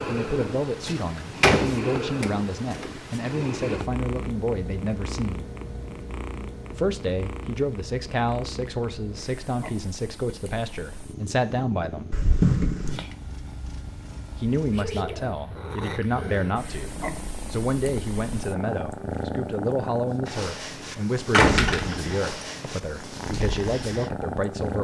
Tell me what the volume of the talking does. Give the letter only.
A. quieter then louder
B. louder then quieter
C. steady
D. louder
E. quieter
C.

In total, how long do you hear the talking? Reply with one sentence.
The talking can be heard for 21 seconds in total.